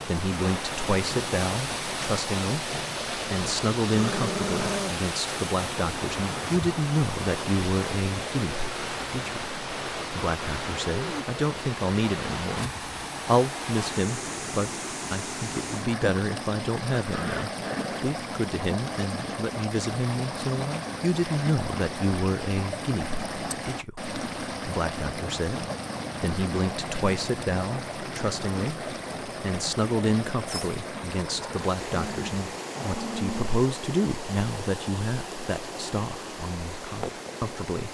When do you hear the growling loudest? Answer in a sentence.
The volume of the growling peaks at 5 seconds.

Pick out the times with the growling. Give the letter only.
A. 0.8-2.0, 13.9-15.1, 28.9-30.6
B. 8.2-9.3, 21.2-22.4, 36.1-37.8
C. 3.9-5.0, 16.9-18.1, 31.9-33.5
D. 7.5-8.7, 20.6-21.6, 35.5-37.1
C.